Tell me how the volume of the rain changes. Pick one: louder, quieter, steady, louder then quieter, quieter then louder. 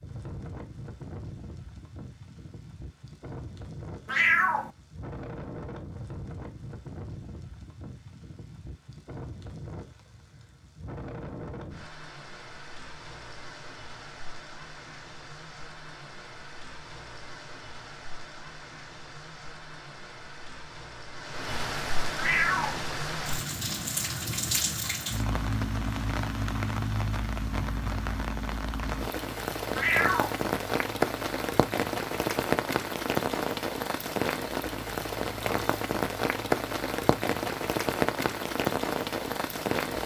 louder.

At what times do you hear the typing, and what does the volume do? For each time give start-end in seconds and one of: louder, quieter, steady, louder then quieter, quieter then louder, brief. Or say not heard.
not heard.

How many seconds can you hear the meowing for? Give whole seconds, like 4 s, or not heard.
2 s.